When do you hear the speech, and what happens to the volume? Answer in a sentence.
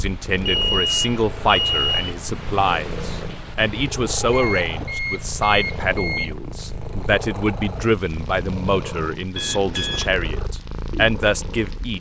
You can hear the speech from 0.0 to 11.9 s, at a steady volume.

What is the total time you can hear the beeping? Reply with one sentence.
The beeping can be heard for 5 seconds in total.